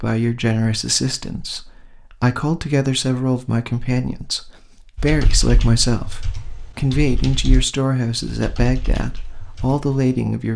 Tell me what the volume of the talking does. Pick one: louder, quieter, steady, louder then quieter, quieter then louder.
steady.